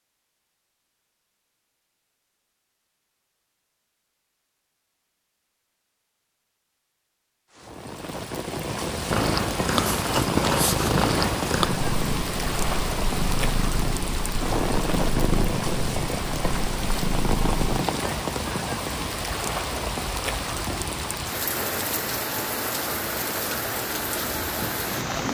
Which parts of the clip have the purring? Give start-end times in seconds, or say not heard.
9.1-17.8.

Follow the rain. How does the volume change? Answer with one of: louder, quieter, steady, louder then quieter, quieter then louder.
steady.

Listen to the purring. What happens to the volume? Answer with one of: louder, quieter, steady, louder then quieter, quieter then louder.
quieter.